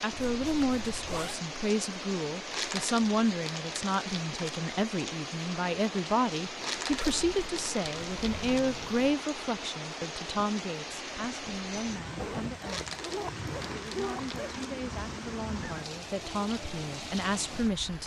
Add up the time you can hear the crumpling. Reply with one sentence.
You can hear the crumpling for 6 seconds altogether.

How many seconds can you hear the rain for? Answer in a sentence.
You can hear the rain for 18 seconds altogether.